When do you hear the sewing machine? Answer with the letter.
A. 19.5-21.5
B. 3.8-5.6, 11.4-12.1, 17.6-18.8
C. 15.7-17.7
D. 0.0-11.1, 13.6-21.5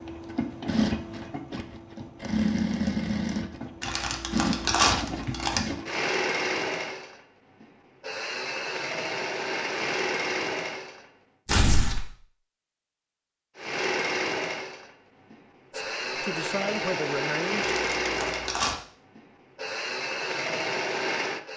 D.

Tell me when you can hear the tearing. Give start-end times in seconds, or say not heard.
3.8-5.6, 11.4-12.1, 17.6-18.8.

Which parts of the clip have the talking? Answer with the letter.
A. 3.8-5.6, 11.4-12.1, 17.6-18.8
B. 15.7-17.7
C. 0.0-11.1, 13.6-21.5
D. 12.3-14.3
B.